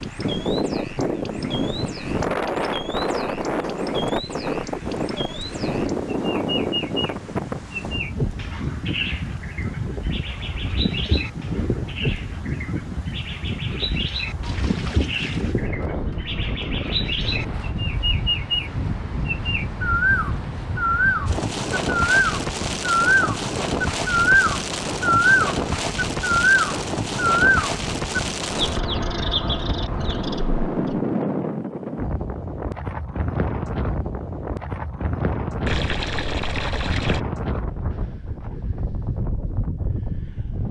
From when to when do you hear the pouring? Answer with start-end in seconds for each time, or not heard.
14.4-15.6, 35.6-37.2.